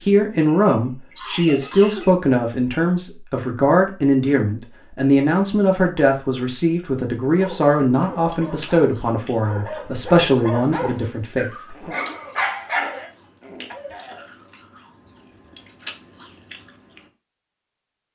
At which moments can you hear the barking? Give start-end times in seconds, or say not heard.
7.3-13.1.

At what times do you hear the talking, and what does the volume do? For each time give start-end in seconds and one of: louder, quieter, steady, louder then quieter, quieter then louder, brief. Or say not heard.
0.0-11.9 steady.